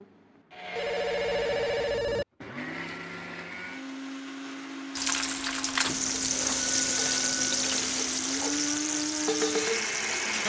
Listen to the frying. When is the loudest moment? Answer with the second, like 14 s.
7 s.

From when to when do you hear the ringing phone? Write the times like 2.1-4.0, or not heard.
0.8-2.2, 5.8-7.6.